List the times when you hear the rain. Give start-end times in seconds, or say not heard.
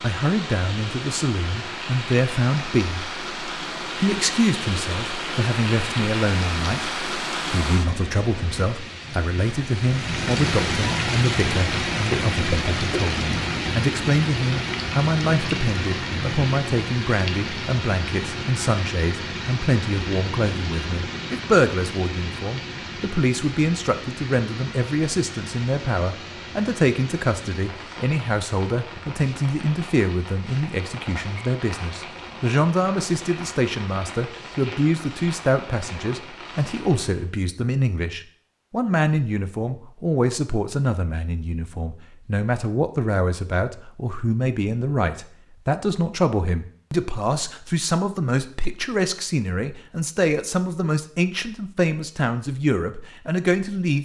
0.0-37.3.